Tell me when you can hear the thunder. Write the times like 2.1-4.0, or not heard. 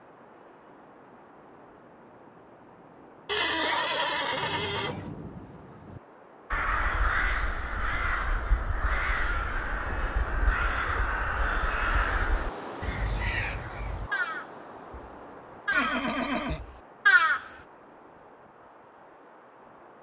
4.3-6.0.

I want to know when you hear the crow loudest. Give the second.
17 s.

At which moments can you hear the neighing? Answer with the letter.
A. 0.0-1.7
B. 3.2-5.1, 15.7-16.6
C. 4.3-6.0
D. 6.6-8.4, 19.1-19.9
B.